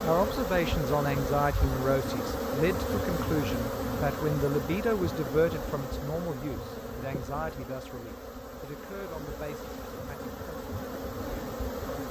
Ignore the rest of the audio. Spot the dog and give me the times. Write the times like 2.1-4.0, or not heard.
not heard.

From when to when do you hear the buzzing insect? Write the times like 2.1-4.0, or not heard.
0.0-12.0.